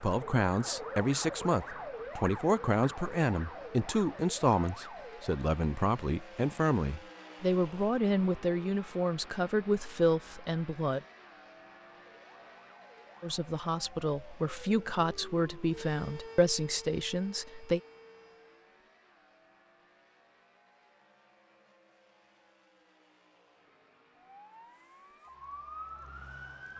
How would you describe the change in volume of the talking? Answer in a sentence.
The volume of the talking stays about the same.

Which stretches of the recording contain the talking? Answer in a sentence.
You can hear the talking from 0.0 to 11.0 s and from 13.2 to 17.8 s.